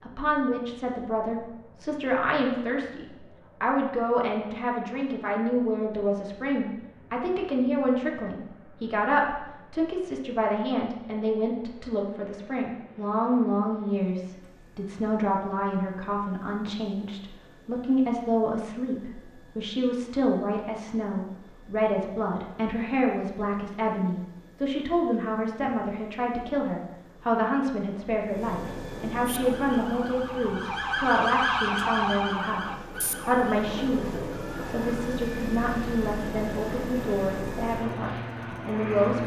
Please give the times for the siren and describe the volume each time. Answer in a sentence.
The siren can be heard from 29.2 to 35.0 s, getting louder then quieter.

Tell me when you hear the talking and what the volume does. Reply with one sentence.
You can hear the talking from 0.0 to 39.2 s, at a steady volume.